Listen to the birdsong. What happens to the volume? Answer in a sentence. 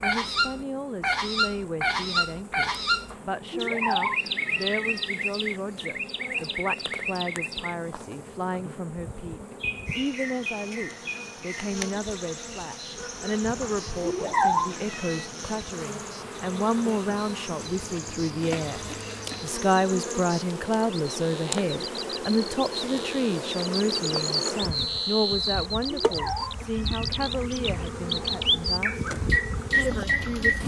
The volume of the birdsong goes down, then up.